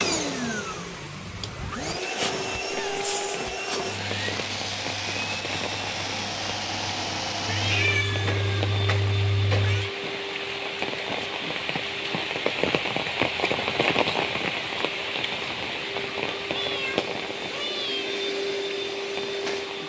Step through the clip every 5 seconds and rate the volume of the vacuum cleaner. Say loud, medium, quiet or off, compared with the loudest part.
loud, loud, medium, loud.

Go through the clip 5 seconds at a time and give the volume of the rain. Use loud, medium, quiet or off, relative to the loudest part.
medium, medium, loud, medium.